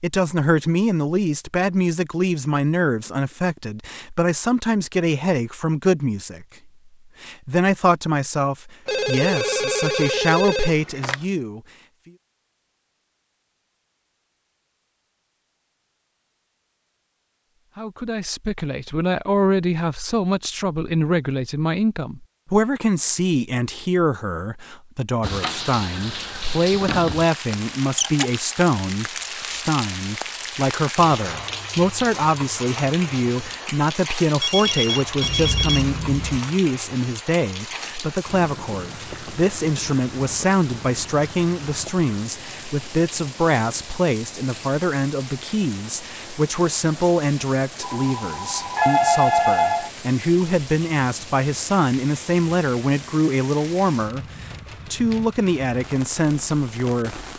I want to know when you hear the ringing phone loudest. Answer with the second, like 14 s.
49 s.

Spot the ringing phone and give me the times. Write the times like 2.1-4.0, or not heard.
8.8-11.2, 34.4-36.4, 47.8-49.9.